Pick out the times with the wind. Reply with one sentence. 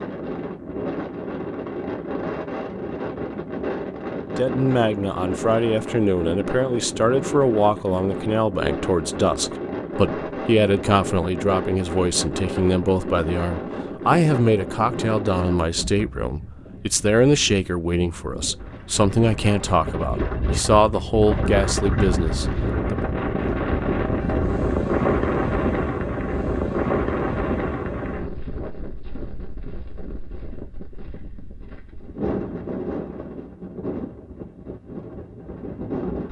The wind can be heard from 0.0 to 36.2 s.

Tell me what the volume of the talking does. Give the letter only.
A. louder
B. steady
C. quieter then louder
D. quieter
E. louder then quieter
B.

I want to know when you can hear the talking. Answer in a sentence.
You can hear the talking from 4.3 to 22.9 s.